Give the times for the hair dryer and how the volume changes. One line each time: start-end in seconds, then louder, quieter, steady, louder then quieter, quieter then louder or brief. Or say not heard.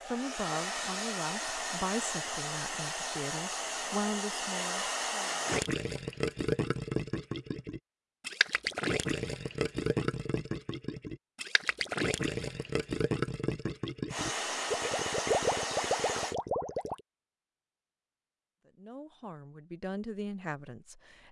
0.0-5.7 steady
14.1-16.4 brief.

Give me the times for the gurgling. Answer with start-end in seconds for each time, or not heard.
5.5-17.0.